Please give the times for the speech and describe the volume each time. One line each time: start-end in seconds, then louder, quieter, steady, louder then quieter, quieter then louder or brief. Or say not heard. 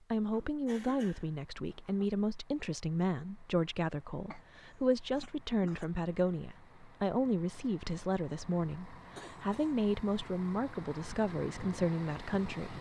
0.1-12.7 steady.